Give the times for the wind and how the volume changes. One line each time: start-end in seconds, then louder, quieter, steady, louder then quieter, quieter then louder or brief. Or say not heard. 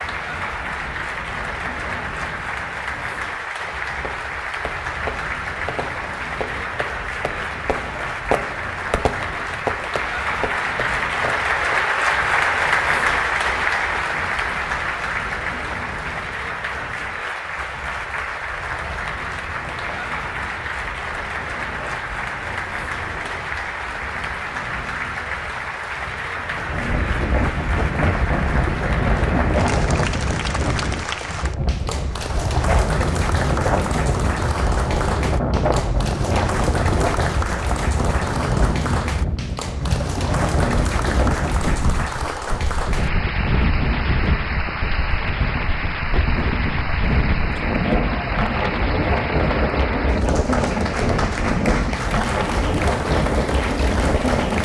0.0-54.5 louder.